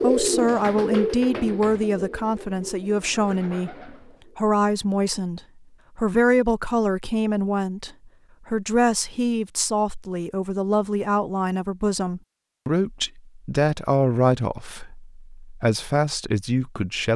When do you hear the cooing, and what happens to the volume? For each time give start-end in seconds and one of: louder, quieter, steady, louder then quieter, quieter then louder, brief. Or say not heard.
0.0-4.4 quieter.